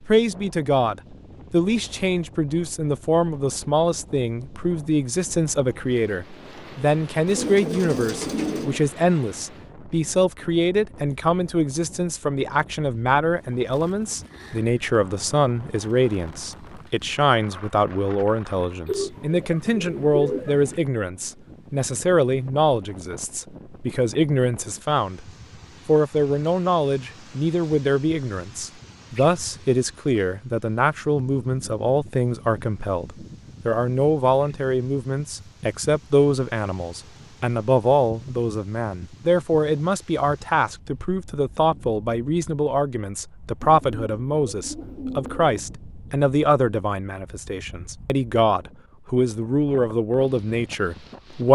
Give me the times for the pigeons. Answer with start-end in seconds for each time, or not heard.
7.2-8.9, 18.9-20.7, 43.6-45.6.